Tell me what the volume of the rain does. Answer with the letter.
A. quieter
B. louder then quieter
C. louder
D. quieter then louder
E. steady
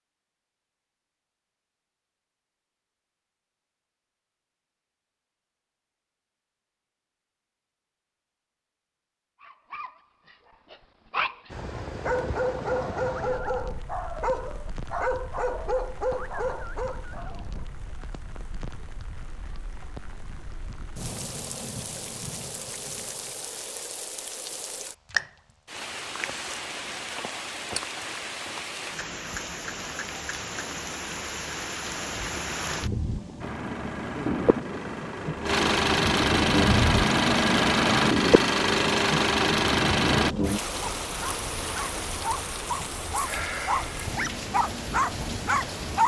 C.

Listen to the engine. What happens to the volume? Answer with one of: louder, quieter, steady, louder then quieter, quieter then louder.
louder.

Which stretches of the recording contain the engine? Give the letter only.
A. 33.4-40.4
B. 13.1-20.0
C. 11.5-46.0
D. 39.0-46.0
A.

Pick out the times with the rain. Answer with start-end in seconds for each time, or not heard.
11.5-46.0.